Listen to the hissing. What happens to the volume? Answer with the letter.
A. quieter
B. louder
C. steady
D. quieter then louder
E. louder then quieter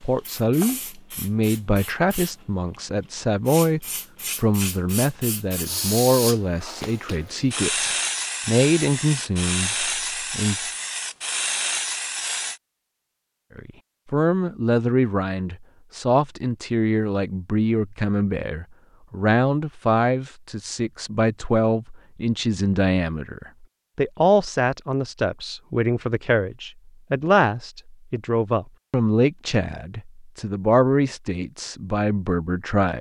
B.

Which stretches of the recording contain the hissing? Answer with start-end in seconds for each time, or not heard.
0.0-12.6.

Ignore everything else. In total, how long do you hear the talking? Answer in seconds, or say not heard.
30 s.